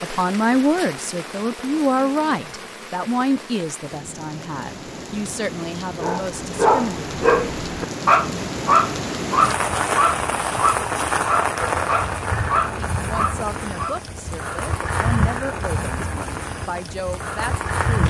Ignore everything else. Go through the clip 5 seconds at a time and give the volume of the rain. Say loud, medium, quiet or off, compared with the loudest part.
medium, loud, loud, loud.